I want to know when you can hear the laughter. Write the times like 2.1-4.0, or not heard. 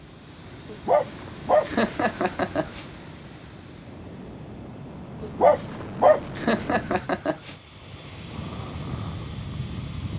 1.6-2.9, 6.3-7.5.